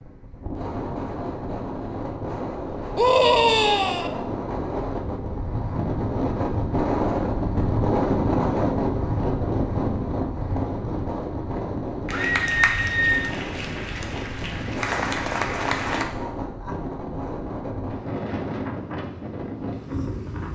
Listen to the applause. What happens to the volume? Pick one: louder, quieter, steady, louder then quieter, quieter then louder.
quieter then louder.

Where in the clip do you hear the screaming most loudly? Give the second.
3 s.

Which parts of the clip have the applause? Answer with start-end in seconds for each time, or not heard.
12.1-16.1.